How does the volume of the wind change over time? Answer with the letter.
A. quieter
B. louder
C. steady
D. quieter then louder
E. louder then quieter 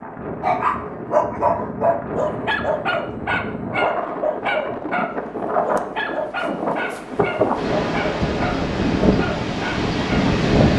B.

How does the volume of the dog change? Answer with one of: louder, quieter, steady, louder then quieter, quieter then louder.
quieter.